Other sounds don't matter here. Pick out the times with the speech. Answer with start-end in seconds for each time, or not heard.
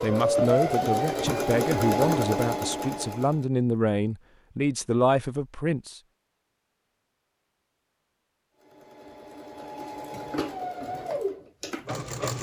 0.0-6.0.